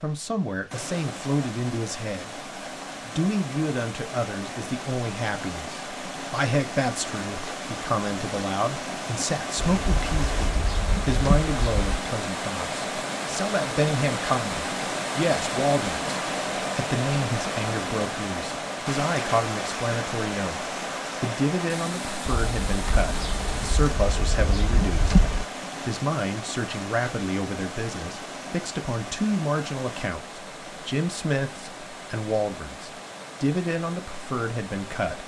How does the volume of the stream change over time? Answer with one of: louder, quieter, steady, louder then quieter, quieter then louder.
louder then quieter.